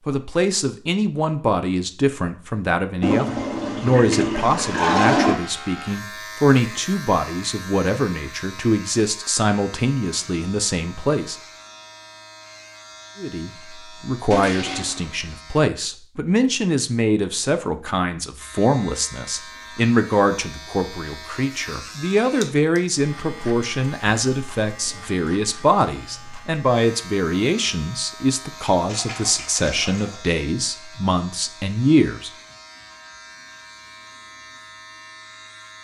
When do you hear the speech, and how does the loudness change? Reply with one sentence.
You can hear the speech from 0.1 to 11.3 s, at a steady volume; and from 13.2 to 32.3 s, at a steady volume.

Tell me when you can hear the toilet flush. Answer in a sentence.
You can hear the toilet flush from 3.0 to 5.3 s, from 14.3 to 15.1 s and from 28.9 to 30.2 s.